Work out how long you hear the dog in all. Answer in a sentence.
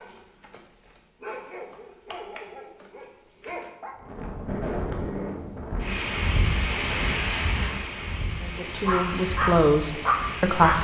The dog can be heard for 6 seconds in total.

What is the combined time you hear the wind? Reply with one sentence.
The wind can be heard for 7 seconds in total.